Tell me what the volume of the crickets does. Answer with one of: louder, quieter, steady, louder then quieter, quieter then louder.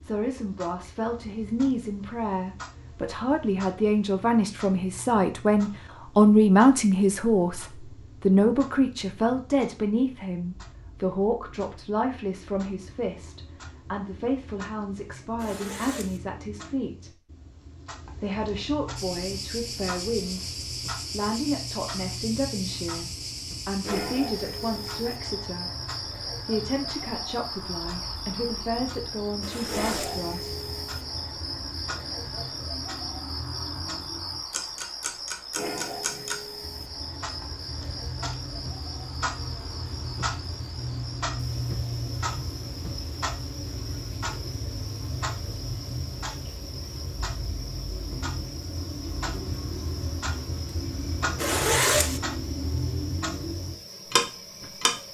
quieter.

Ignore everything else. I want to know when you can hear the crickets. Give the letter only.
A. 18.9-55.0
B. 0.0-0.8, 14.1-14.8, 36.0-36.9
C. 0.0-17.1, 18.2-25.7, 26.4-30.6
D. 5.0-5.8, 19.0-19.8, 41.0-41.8
A.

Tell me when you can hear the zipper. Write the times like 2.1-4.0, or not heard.
15.3-16.2, 29.4-30.2, 51.4-52.2.